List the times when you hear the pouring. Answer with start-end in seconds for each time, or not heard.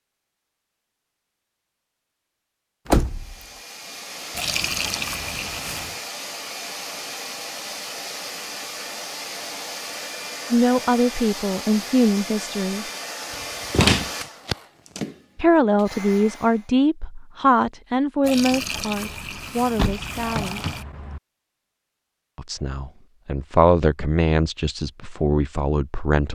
4.3-6.0, 18.2-20.9.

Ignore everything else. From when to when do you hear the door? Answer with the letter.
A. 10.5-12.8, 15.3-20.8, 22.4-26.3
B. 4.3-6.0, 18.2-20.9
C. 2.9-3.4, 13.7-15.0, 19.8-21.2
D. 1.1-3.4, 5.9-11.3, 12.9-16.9
C.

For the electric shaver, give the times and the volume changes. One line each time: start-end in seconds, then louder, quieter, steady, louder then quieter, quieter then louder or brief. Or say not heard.
not heard.